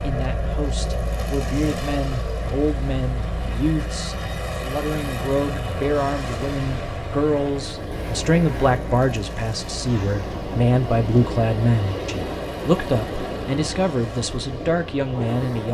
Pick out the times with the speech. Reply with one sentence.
You can hear the speech from 0.0 to 15.6 s.